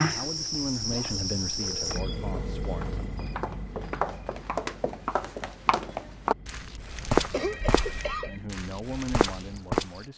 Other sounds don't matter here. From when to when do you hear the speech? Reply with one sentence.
You can hear the speech from 0.0 to 3.0 s and from 8.2 to 10.1 s.